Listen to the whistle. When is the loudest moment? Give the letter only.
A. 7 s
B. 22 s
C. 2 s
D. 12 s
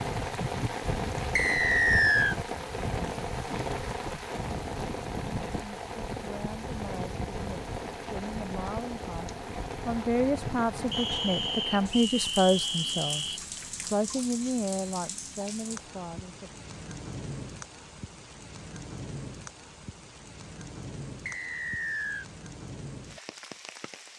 C.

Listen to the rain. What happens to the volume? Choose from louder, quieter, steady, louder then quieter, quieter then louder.
quieter.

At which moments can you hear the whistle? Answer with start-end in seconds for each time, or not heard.
1.4-2.4, 10.9-13.4, 21.2-22.2.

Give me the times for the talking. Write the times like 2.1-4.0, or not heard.
5.5-16.5.